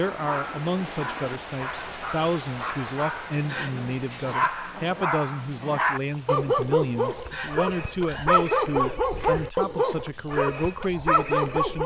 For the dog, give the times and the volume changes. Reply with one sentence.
The dog can be heard from 0.1 to 11.8 s, getting louder.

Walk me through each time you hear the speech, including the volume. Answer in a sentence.
The speech can be heard from 0.0 to 11.8 s, at a steady volume.